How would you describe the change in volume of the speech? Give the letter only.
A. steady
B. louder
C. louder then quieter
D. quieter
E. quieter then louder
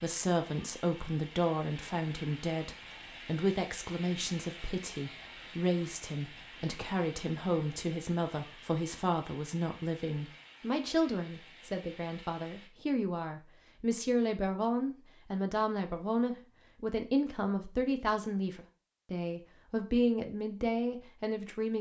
A.